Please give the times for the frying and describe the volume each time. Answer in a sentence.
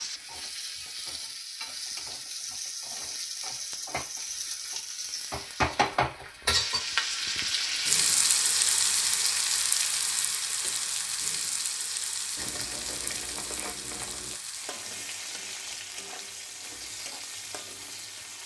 The frying can be heard from 0.0 to 18.4 s, getting louder then quieter.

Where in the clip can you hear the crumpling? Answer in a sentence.
You can hear the crumpling from 12.3 to 14.3 s.